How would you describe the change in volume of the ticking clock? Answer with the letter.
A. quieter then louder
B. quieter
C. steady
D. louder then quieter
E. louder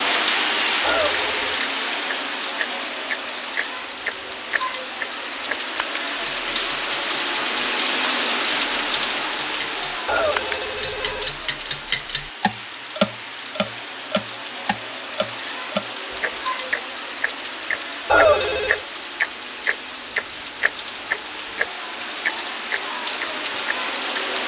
A.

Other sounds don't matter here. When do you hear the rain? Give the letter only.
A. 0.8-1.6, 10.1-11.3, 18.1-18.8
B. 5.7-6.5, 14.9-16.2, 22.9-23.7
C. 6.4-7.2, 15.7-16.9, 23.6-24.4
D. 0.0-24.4
D.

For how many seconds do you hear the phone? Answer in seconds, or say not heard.
3 s.